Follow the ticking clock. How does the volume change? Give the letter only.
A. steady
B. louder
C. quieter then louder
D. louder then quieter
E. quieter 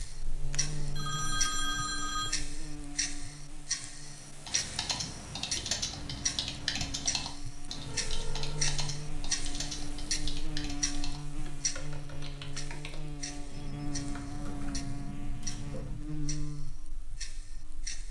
E.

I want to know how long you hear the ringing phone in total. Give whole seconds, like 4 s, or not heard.
4 s.